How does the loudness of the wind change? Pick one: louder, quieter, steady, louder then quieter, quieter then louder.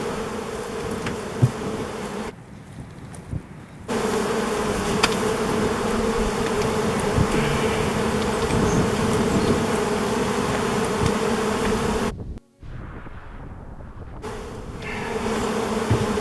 louder then quieter.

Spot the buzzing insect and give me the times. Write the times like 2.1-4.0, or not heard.
0.0-2.4, 3.9-12.2, 14.2-16.1.